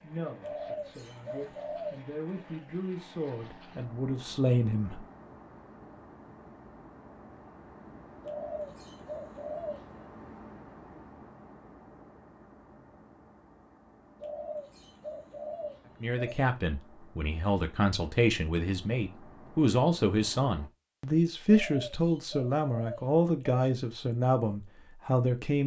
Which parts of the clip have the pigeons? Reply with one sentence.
The pigeons can be heard from 0.4 to 2.0 s, from 8.2 to 10.0 s, from 14.2 to 16.4 s and from 21.4 to 23.7 s.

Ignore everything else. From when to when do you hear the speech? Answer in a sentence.
The speech can be heard from 0.0 to 5.0 s and from 16.0 to 25.6 s.